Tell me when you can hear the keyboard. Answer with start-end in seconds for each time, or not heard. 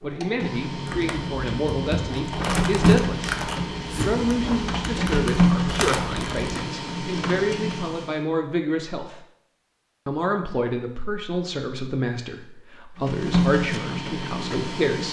0.8-6.7.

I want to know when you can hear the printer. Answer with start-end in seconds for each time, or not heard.
0.0-8.2, 12.9-15.0.